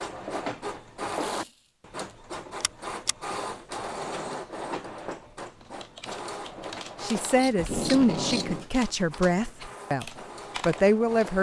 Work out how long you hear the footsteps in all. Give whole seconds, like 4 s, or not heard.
not heard.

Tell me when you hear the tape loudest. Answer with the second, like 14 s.
8 s.